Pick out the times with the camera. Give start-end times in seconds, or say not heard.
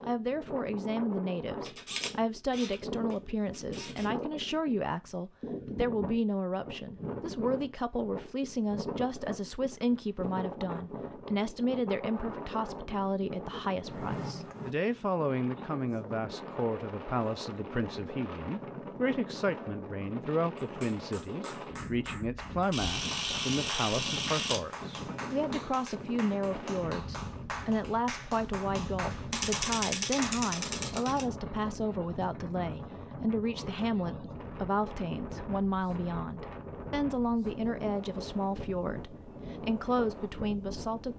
1.6-4.1, 22.7-24.6, 29.3-31.2.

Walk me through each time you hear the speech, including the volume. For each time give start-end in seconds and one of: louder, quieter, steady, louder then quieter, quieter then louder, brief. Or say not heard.
0.0-41.1 steady.